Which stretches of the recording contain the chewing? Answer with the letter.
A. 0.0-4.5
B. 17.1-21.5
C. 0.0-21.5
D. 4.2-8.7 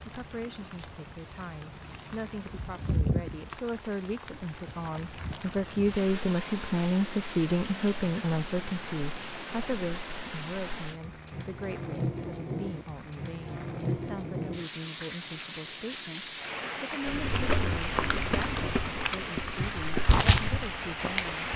B.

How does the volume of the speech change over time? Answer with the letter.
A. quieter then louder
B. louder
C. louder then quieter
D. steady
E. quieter
C.